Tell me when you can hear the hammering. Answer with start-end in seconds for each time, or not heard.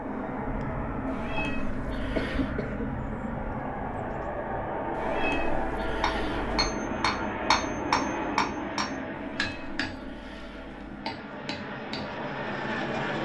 5.9-12.2.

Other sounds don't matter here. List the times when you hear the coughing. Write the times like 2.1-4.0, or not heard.
2.1-3.0.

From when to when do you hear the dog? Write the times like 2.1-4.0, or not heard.
not heard.